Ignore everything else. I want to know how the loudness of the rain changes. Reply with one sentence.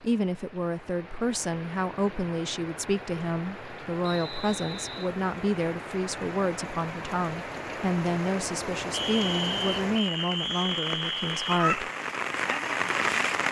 The loudness of the rain goes up.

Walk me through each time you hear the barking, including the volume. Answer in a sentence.
You can't hear the barking here.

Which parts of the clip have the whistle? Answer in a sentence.
The whistle can be heard from 4.0 to 5.1 s and from 8.9 to 11.7 s.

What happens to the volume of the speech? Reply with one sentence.
The volume of the speech stays about the same.